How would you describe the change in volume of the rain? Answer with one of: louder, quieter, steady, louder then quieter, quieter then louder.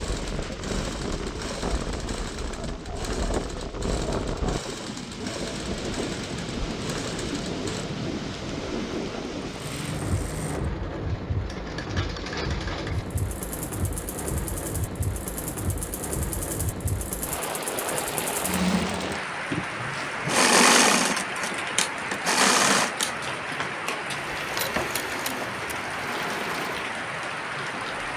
steady.